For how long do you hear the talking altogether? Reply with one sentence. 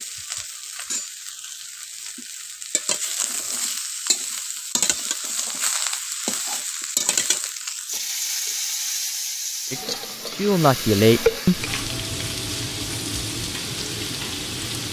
The talking can be heard for 2 seconds in total.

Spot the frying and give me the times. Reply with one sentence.
You can hear the frying from 0.0 to 14.8 s.